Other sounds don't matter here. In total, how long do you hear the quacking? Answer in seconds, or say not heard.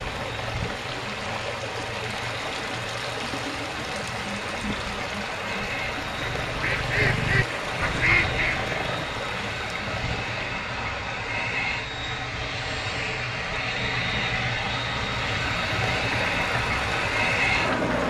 3 s.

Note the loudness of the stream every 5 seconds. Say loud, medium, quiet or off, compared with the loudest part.
loud, loud, medium, loud.